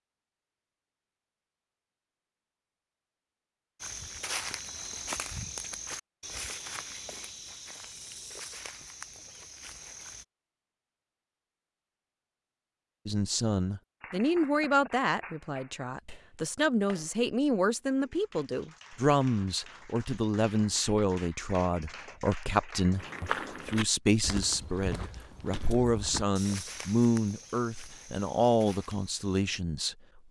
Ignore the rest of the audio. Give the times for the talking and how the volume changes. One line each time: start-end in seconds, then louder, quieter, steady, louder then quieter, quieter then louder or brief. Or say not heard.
13.1-30.2 steady.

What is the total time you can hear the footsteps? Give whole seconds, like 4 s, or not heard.
13 s.